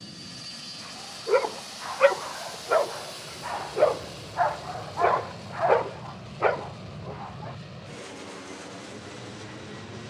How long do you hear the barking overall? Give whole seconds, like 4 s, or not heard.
7 s.